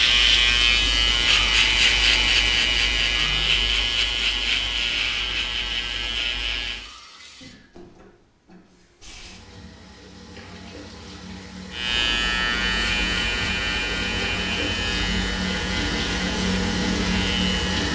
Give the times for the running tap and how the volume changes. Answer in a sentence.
You can hear the running tap from 0.0 to 17.9 s, getting quieter then louder.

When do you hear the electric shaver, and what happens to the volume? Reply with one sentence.
You can hear the electric shaver from 0.0 to 6.9 s, getting quieter; and from 11.7 to 17.9 s, getting quieter.